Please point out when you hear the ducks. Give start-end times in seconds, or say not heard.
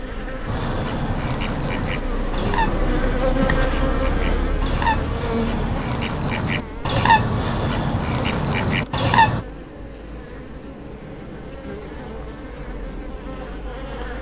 0.5-9.4.